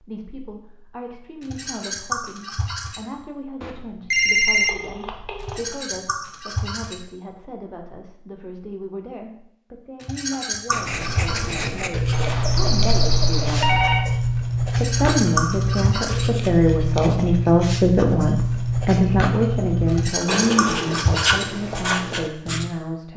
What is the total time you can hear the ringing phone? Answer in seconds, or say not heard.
4 s.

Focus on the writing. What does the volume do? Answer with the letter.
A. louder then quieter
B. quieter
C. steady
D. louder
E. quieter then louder
C.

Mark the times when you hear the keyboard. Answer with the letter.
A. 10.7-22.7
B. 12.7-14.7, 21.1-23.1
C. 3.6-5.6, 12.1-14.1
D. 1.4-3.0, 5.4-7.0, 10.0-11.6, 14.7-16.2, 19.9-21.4
D.